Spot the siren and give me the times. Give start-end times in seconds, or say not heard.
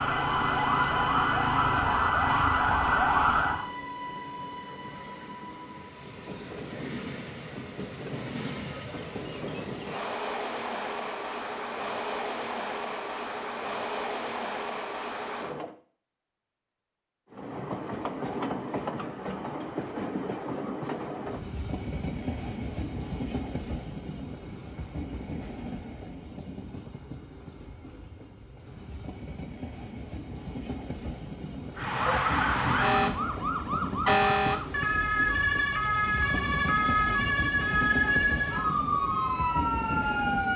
0.0-3.6, 31.8-40.5.